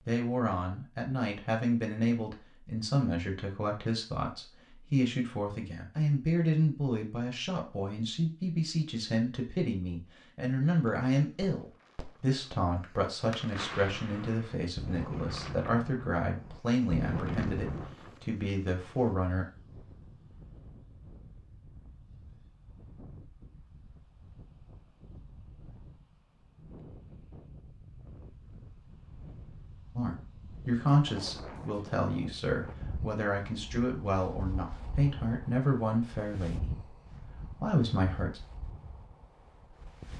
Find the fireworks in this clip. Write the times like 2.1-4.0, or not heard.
10.8-17.9.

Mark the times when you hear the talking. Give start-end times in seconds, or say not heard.
0.1-19.4, 29.9-38.4.